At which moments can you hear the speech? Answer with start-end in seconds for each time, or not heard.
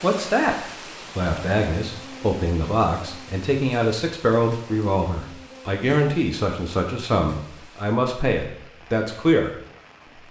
0.0-0.6, 1.1-9.6.